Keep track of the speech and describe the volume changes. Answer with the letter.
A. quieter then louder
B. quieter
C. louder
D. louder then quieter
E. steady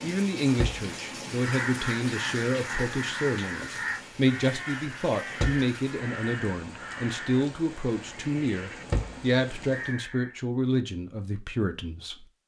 E.